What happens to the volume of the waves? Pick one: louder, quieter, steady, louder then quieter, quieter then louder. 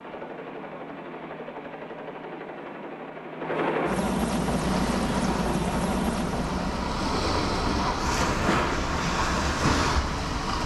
louder.